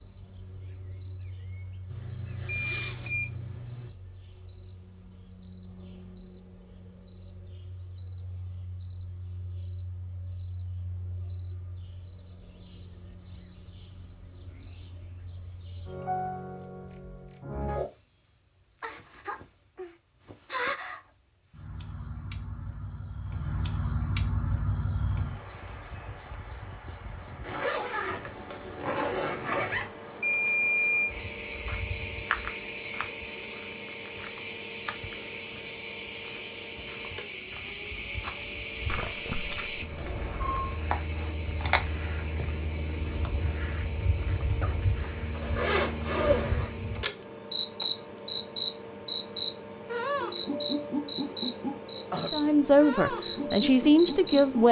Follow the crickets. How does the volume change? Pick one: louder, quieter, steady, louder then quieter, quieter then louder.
louder.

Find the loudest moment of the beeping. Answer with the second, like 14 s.
31 s.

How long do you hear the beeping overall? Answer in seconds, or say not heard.
4 s.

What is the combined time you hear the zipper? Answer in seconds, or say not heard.
6 s.